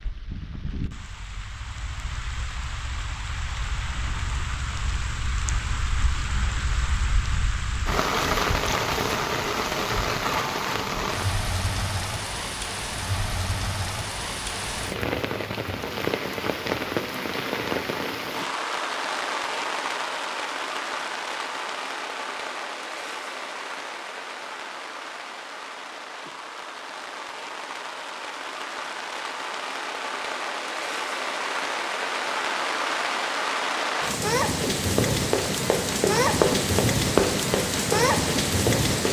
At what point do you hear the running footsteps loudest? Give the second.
37 s.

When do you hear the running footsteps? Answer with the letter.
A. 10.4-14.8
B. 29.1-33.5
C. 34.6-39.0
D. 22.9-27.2
C.